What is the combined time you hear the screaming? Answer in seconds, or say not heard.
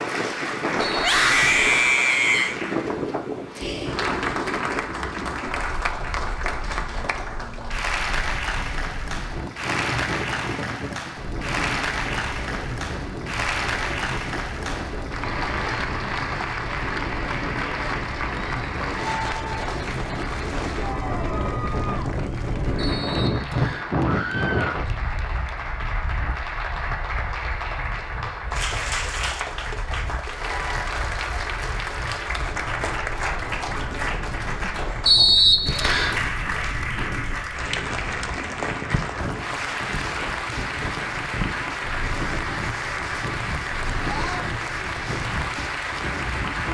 3 s.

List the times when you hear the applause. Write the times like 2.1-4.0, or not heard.
0.0-46.6.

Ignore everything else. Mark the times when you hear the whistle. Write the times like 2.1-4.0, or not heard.
0.8-1.9, 22.8-23.9, 35.0-36.2.